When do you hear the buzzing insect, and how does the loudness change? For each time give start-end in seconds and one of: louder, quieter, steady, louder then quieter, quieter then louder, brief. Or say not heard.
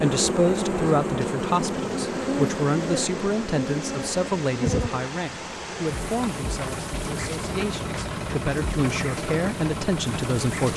0.0-10.7 quieter.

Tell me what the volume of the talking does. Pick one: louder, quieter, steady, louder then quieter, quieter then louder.
quieter then louder.